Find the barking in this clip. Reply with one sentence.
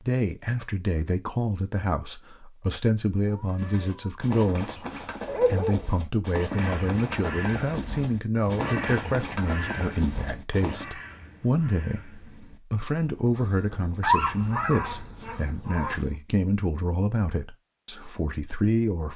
The barking can be heard from 5.2 to 5.8 s and from 14.0 to 16.0 s.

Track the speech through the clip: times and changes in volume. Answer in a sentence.
You can hear the speech from 0.1 to 19.1 s, at a steady volume.